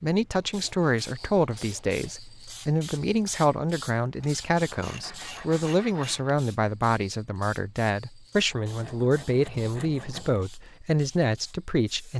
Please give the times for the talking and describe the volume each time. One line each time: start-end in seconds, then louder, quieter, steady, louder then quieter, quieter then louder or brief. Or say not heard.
0.0-12.1 steady.